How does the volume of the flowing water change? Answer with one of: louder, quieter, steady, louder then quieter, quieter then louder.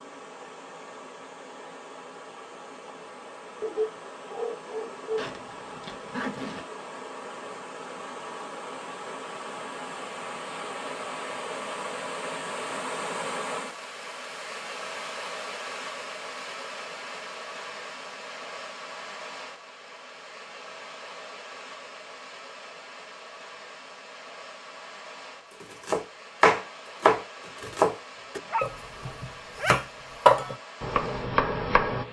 louder then quieter.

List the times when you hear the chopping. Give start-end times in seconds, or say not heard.
25.6-32.0.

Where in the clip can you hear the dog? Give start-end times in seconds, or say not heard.
3.6-5.3, 28.4-29.8.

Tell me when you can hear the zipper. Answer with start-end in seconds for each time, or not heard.
5.2-6.7.